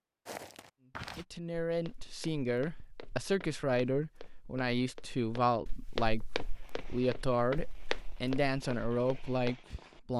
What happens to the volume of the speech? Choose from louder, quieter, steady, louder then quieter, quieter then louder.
steady.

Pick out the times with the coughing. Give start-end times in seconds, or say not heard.
not heard.